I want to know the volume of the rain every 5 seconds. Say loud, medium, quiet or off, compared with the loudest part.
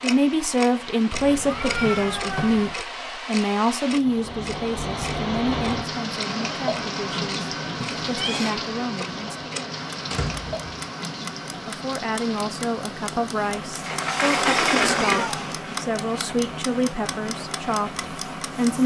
medium, loud, medium, medium.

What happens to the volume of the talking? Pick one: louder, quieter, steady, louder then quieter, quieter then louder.
quieter then louder.